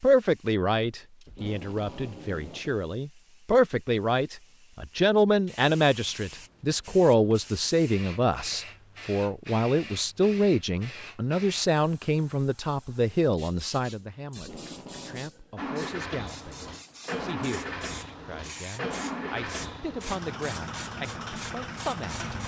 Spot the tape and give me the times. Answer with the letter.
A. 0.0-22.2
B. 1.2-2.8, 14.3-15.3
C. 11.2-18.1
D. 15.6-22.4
B.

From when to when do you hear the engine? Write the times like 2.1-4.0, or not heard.
15.6-22.4.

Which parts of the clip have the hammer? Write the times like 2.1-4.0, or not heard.
not heard.